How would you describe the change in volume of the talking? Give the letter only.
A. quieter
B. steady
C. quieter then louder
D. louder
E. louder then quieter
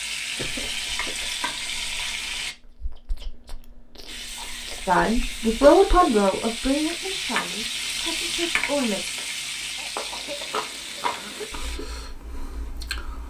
A.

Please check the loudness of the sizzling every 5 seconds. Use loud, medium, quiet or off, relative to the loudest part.
loud, loud, medium.